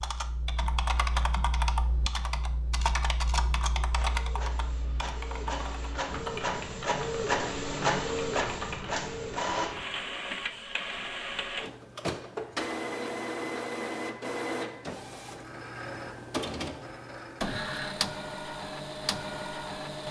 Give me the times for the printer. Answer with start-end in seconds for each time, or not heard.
3.9-20.0.